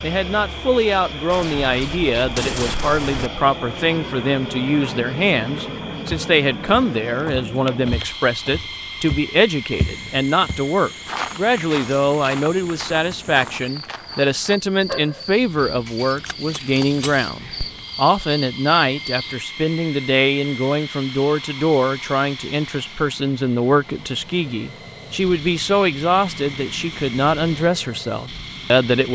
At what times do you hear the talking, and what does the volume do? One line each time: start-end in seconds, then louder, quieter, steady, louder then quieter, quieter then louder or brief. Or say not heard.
0.0-29.1 steady.